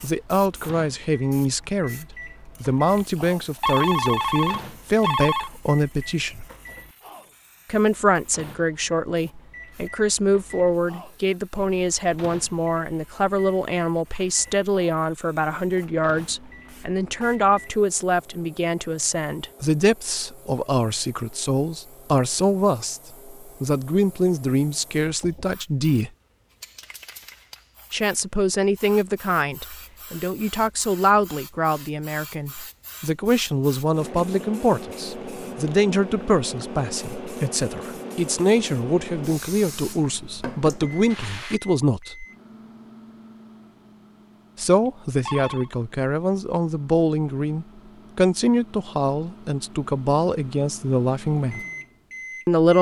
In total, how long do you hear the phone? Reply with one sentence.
You can hear the phone for 4 seconds altogether.